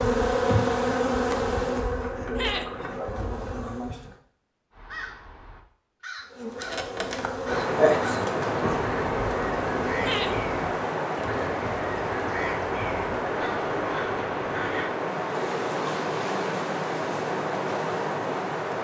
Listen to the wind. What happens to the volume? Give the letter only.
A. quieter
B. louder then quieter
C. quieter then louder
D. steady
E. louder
D.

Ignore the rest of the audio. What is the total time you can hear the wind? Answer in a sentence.
The wind can be heard for 11 seconds in total.